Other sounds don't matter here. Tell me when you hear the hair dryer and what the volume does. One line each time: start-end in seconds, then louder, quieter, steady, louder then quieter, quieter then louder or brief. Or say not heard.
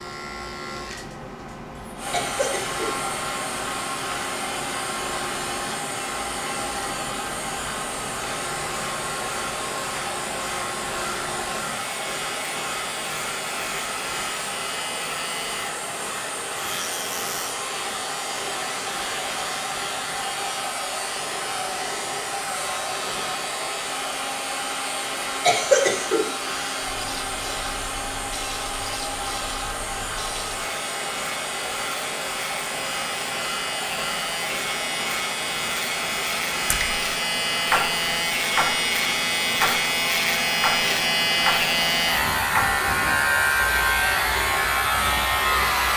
1.9-45.9 steady.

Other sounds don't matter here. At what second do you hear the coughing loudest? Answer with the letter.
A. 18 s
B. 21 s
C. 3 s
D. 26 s
D.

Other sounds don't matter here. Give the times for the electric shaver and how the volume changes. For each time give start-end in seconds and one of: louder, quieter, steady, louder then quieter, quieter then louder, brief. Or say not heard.
0.0-45.9 louder.